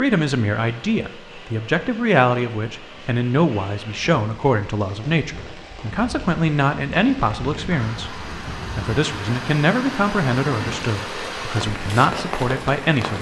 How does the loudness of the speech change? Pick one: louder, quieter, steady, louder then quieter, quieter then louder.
steady.